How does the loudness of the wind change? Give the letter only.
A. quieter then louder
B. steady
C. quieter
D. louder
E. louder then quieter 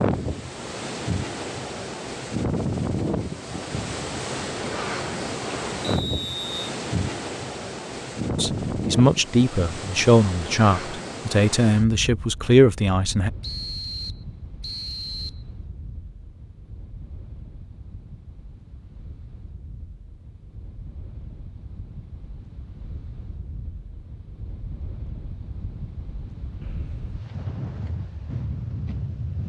A.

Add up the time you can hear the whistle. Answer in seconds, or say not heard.
3 s.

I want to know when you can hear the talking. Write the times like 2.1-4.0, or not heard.
8.3-13.3.